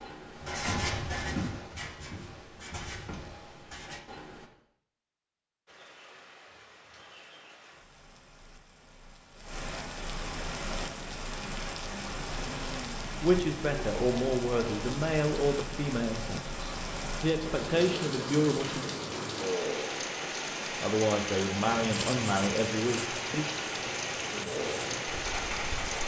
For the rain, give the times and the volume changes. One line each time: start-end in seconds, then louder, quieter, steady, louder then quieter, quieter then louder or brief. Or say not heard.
5.7-26.0 louder.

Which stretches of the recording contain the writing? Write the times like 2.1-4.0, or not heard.
0.0-4.5, 21.6-26.0.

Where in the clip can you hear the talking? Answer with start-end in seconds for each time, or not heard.
13.2-18.9, 20.8-23.4.